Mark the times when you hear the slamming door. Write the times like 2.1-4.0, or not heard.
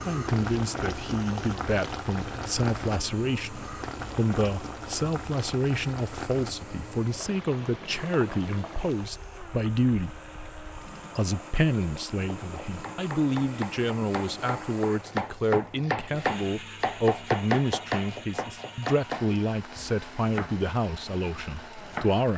not heard.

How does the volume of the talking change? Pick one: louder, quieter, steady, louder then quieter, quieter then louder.
steady.